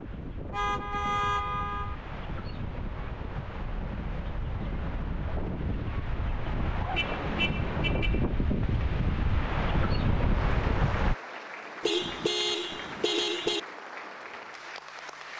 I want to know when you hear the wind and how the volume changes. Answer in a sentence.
The wind can be heard from 0.0 to 11.2 s, getting louder.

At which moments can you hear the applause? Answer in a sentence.
You can hear the applause from 10.3 to 15.3 s.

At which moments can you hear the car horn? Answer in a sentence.
You can hear the car horn from 0.5 to 1.9 s, from 6.9 to 8.2 s and from 11.8 to 13.6 s.